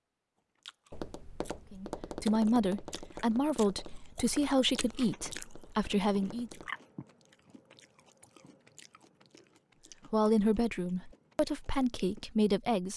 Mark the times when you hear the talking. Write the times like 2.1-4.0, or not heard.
1.7-6.5, 10.1-12.9.